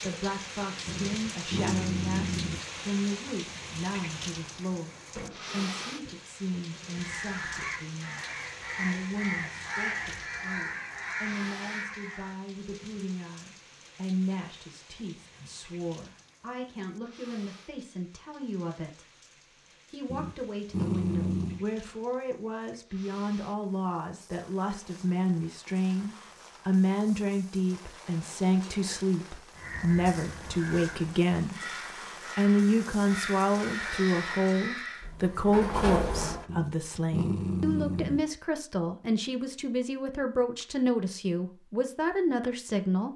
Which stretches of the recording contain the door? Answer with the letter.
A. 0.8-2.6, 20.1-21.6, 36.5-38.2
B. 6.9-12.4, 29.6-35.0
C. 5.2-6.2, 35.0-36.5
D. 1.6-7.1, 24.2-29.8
C.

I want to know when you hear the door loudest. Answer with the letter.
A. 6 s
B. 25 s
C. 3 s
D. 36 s
D.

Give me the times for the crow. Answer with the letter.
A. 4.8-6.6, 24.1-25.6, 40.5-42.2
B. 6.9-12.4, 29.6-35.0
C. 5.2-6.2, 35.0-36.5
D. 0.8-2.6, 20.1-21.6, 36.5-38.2
B.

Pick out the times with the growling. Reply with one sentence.
The growling can be heard from 0.8 to 2.6 s, from 20.1 to 21.6 s and from 36.5 to 38.2 s.